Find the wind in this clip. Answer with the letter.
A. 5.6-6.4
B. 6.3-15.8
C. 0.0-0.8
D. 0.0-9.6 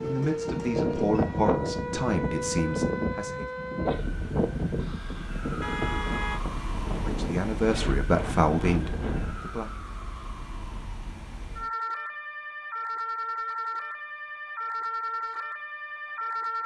D.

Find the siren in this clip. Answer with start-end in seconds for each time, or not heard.
0.0-16.6.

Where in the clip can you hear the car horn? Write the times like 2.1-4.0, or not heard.
5.6-6.4.